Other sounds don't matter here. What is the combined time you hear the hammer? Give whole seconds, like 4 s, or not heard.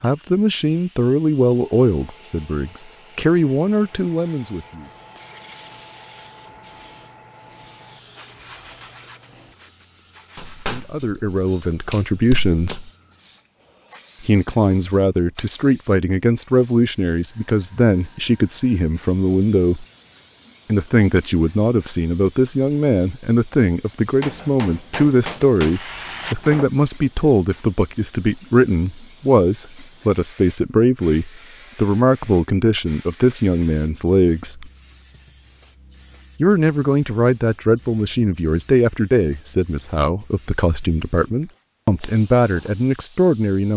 5 s.